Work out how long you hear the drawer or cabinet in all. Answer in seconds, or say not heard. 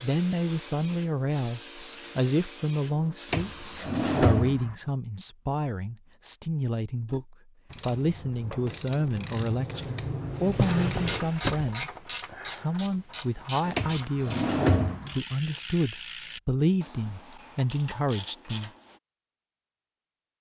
4 s.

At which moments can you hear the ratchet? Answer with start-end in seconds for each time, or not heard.
7.0-19.0.